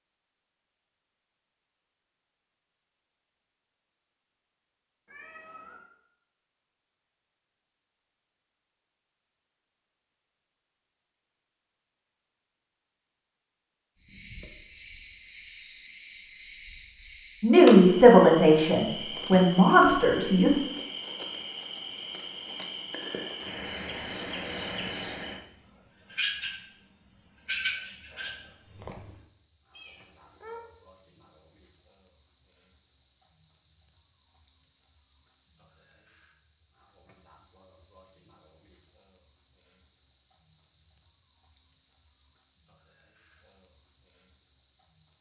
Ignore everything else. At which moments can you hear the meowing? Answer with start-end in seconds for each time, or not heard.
5.0-5.9, 29.7-30.6.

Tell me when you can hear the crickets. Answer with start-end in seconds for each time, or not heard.
14.0-45.1.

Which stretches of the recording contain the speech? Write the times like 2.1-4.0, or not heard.
17.4-20.6.